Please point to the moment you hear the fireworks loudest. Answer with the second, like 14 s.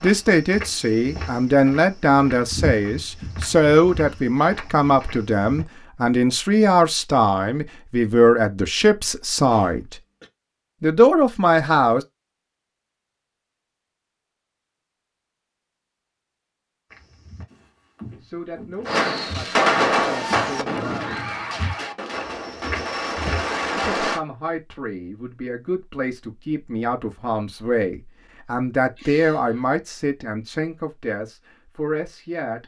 20 s.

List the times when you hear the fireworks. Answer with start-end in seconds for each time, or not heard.
18.9-24.2.